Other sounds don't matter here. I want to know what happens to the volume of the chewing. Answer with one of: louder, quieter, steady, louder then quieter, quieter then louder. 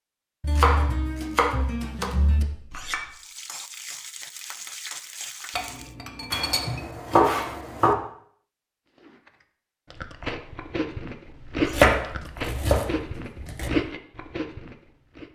louder then quieter.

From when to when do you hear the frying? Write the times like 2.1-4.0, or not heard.
3.1-6.0.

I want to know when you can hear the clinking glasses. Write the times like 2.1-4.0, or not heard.
2.5-3.1, 5.5-6.8, 11.5-12.0.